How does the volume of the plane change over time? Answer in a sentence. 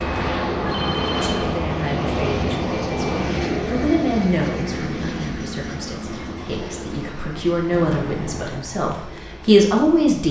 The loudness of the plane goes down.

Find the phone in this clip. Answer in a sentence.
The phone can be heard from 0.7 to 1.3 s and from 7.7 to 8.7 s.